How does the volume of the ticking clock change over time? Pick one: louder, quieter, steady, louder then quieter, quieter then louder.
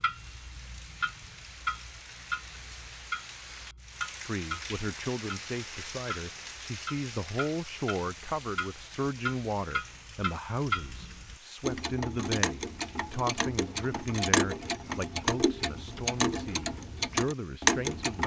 louder.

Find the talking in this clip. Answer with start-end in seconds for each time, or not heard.
4.2-18.2.